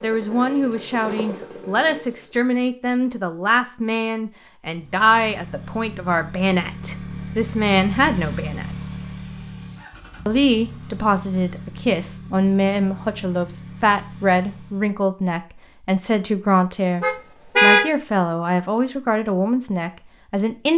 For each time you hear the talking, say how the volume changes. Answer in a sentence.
The talking can be heard from 0.0 to 8.8 s, at a steady volume; and from 10.2 to 20.7 s, at a steady volume.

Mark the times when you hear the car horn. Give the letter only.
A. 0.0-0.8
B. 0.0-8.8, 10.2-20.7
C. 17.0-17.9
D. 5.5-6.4
C.